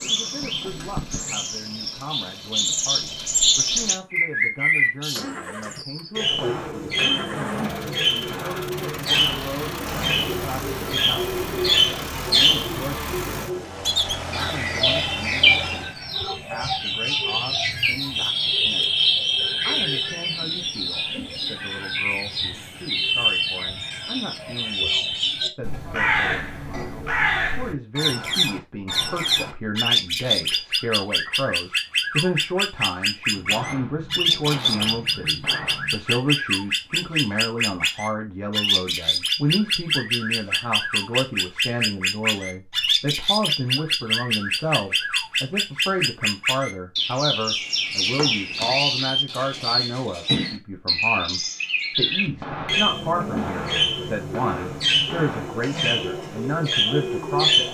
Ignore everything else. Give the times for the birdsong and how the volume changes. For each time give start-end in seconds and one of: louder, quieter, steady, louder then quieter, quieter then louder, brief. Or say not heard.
0.0-57.6 steady.